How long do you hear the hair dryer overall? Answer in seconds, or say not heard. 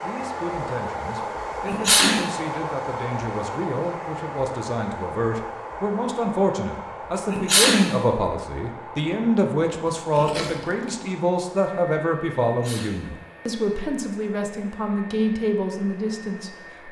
17 s.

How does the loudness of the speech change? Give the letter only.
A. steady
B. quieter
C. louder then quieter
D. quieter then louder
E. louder
E.